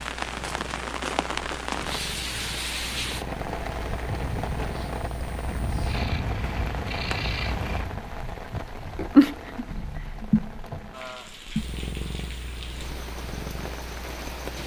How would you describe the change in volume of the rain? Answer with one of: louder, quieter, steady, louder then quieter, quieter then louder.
quieter.